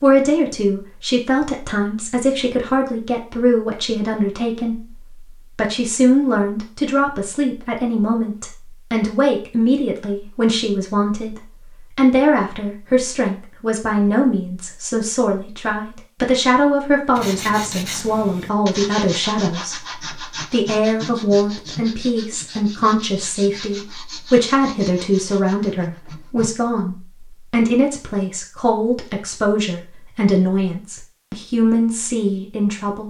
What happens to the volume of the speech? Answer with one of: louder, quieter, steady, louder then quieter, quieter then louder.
steady.